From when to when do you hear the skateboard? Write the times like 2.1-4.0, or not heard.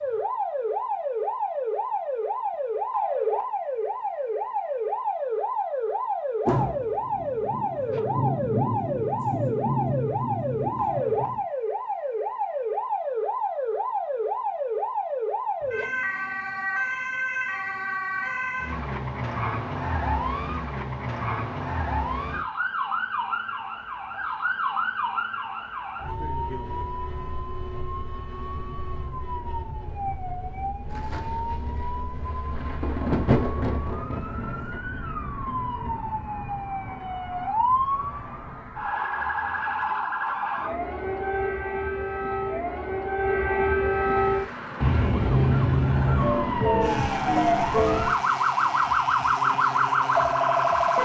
not heard.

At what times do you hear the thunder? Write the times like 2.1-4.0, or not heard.
6.5-11.4, 30.9-34.8.